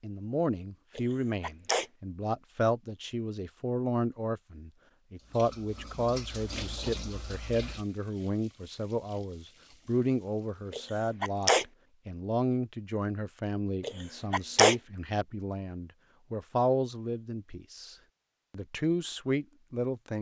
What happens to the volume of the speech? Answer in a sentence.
The volume of the speech stays about the same.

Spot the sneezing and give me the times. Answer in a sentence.
You can hear the sneezing from 0.9 to 1.9 s, from 10.7 to 11.7 s and from 13.8 to 14.8 s.